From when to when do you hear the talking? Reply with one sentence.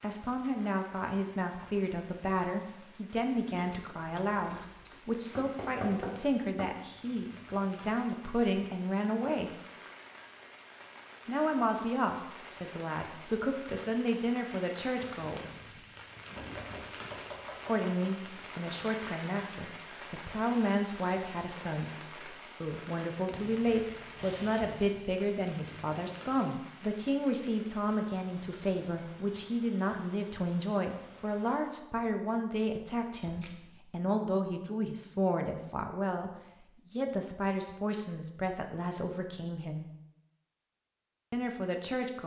You can hear the talking from 0.0 to 9.6 s, from 11.2 to 15.8 s, from 17.6 to 39.9 s and from 41.3 to 42.2 s.